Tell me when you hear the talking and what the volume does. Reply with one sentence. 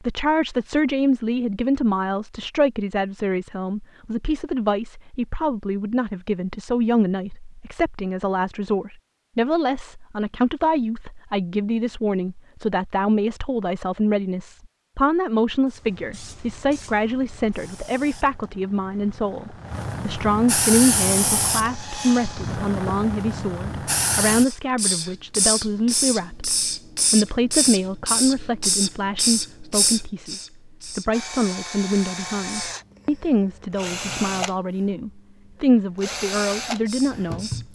You can hear the talking from 0.0 to 37.7 s, at a steady volume.